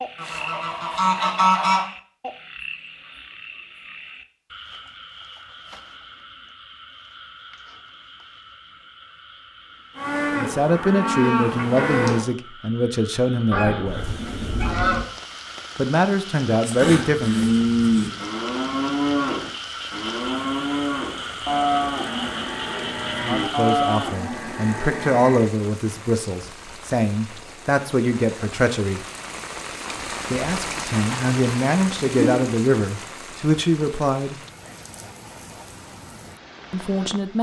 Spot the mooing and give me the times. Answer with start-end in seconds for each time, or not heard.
9.9-12.2, 16.6-25.6.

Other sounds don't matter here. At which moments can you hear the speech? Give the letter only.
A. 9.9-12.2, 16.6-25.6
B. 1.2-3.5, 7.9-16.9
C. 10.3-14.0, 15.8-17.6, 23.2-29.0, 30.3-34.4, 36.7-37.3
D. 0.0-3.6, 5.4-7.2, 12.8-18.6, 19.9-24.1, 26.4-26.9
C.